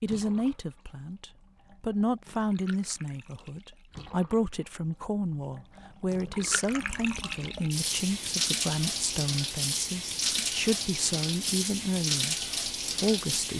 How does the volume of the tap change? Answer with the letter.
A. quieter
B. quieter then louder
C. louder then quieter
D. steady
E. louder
E.